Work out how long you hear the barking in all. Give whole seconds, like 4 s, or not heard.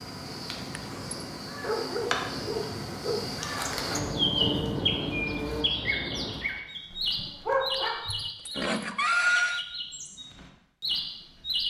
3 s.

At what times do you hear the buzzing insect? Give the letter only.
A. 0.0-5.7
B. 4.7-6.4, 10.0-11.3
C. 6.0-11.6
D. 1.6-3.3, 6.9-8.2
A.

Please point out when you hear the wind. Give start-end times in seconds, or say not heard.
0.0-6.4.